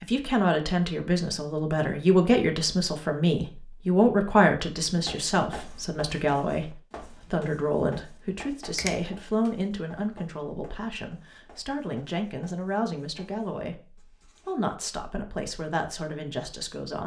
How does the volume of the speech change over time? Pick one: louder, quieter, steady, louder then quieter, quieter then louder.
quieter.